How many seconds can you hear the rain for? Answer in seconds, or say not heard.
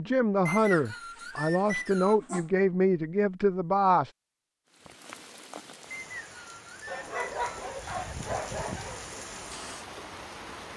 6 s.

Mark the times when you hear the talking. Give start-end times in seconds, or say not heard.
0.0-4.1.